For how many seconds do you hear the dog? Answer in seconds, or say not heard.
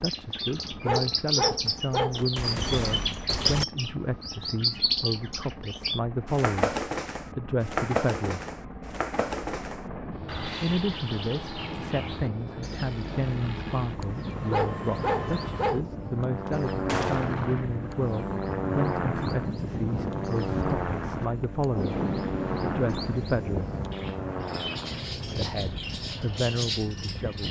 3 s.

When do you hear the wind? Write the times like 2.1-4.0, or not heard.
9.8-27.4.